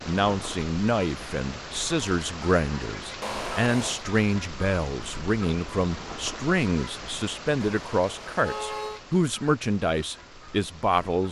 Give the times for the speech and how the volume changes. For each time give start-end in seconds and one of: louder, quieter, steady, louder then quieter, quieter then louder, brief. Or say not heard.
0.0-11.2 steady.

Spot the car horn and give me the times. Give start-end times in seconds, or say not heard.
3.2-4.0, 7.6-9.0.